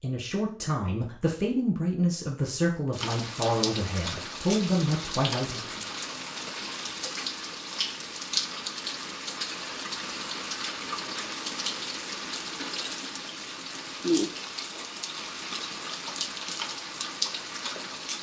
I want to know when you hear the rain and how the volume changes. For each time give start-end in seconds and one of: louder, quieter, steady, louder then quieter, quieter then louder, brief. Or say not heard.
2.9-18.1 steady.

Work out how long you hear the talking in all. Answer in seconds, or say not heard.
6 s.